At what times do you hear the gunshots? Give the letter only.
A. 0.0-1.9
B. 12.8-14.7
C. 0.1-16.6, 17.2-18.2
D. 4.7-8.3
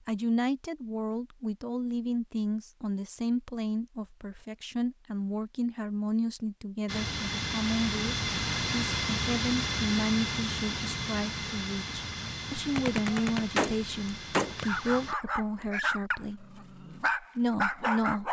B.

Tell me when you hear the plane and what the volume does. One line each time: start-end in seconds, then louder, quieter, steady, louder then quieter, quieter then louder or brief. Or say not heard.
6.8-15.2 quieter.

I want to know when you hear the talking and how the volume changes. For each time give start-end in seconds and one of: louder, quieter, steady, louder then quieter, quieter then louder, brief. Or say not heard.
0.1-16.6 steady
17.2-18.2 brief.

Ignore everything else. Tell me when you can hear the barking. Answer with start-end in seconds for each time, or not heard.
14.6-18.2.